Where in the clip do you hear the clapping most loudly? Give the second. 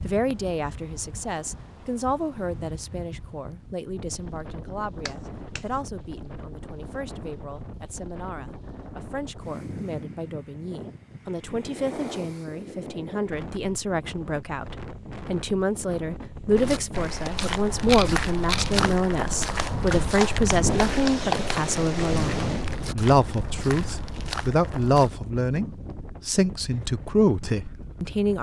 21 s.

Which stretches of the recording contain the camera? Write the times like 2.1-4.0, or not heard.
17.4-18.9.